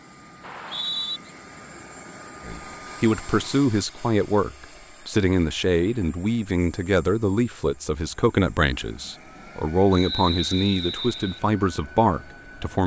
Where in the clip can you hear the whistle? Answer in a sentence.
The whistle can be heard from 0.4 to 1.2 s and from 9.9 to 11.4 s.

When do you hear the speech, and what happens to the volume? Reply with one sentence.
You can hear the speech from 2.5 to 12.8 s, at a steady volume.